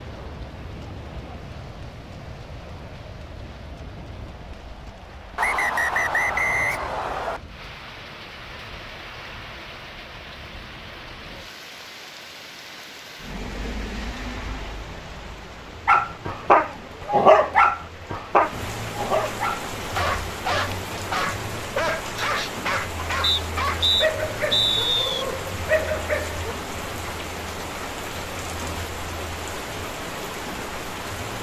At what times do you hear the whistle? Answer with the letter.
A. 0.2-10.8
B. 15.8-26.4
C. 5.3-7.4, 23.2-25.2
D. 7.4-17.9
C.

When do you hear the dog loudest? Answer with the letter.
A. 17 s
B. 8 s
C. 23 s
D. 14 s
A.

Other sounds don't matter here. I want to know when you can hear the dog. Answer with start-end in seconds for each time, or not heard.
15.8-26.4.